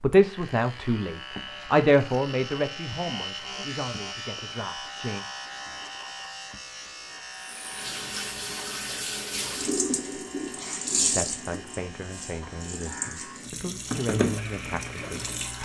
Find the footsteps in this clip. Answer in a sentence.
The footsteps can't be heard in this clip.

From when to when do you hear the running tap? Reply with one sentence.
You can hear the running tap from 7.3 to 15.6 s.